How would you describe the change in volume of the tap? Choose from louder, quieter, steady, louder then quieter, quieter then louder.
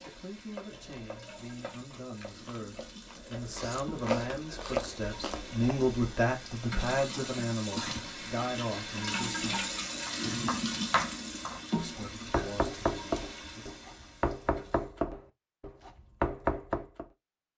louder then quieter.